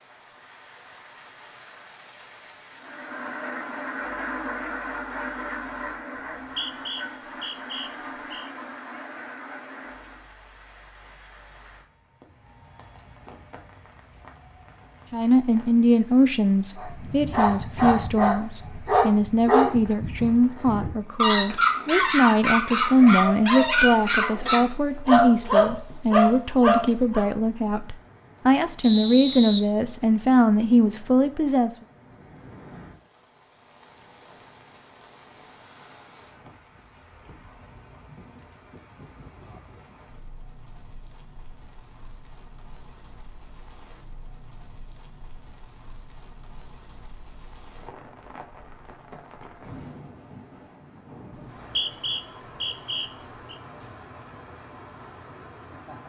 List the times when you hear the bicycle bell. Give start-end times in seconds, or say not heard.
not heard.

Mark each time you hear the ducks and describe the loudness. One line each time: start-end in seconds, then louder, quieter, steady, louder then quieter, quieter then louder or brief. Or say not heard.
2.7-10.2 quieter.